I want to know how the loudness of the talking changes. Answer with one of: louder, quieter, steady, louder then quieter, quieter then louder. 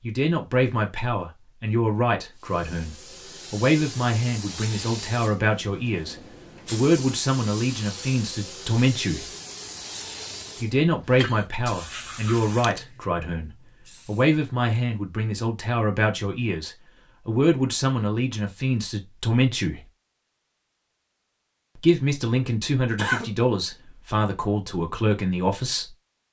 steady.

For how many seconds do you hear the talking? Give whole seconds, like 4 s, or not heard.
23 s.